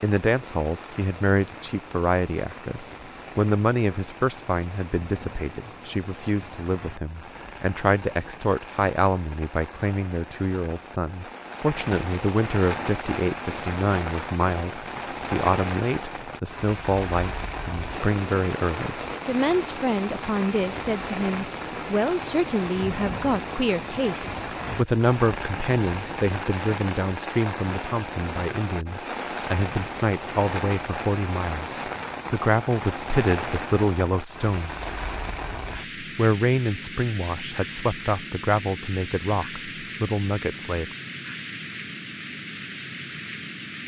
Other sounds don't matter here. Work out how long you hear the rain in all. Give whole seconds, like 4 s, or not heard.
44 s.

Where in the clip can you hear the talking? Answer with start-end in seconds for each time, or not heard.
0.0-35.0, 36.0-40.9.